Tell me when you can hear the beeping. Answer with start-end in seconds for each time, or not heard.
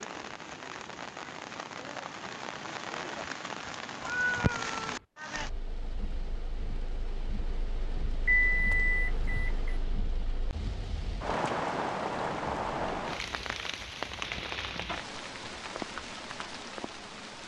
8.2-9.8.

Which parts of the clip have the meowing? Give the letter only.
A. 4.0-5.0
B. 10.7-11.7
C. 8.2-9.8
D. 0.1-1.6
A.